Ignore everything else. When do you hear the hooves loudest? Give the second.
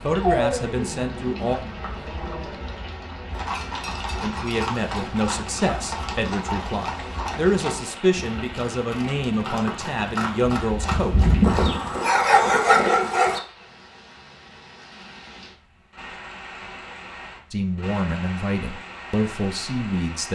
11 s.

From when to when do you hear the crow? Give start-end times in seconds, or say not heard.
not heard.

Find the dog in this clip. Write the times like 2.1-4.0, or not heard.
0.1-2.8, 11.4-13.4.